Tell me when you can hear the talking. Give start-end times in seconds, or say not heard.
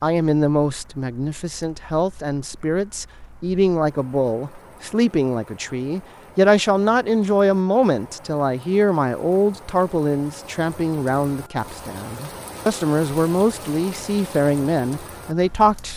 0.0-15.9.